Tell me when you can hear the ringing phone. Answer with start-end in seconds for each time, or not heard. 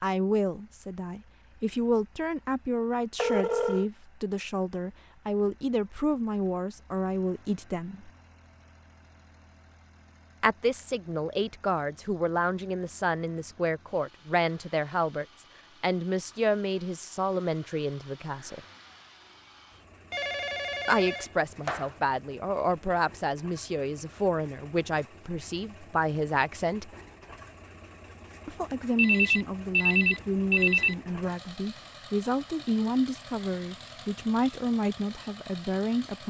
3.1-3.9, 20.1-21.9, 28.9-30.9.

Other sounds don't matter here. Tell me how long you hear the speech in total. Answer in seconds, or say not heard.
30 s.